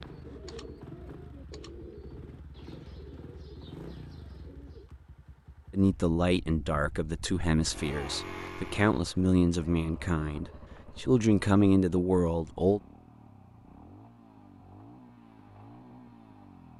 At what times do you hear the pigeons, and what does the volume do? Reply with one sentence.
The pigeons can be heard from 0.0 to 4.9 s, getting quieter.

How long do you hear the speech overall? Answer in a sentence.
You can hear the speech for 7 seconds altogether.